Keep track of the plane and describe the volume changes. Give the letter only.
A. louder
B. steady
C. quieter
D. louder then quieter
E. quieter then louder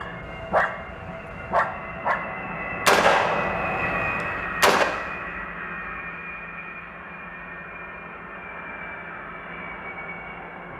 D.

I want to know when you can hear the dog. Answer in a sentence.
The dog can be heard from 0.0 to 2.2 s.